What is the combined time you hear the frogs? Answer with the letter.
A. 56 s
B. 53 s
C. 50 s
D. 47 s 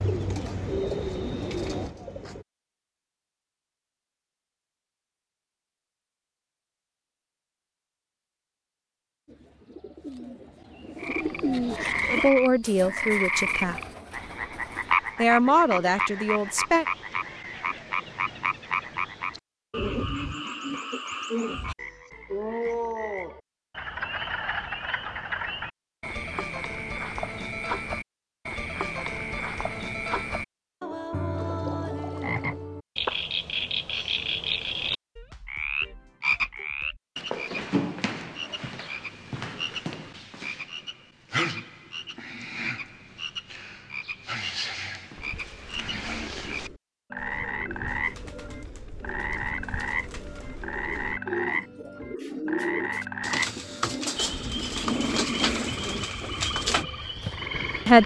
D.